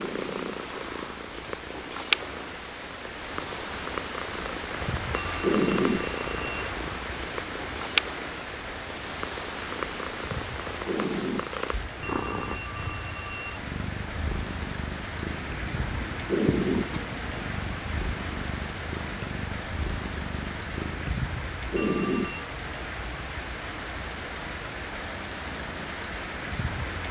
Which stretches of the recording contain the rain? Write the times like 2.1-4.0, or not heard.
0.0-27.0.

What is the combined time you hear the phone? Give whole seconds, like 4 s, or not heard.
4 s.